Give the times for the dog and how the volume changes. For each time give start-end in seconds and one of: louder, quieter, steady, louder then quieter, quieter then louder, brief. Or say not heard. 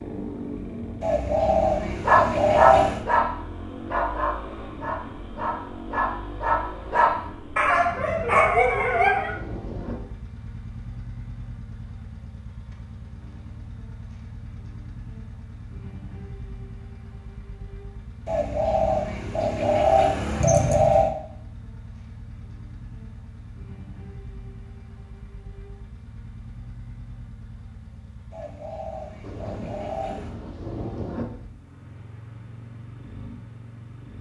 2.0-9.3 quieter then louder.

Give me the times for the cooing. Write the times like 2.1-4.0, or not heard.
1.0-3.0, 18.2-21.1, 28.3-30.4.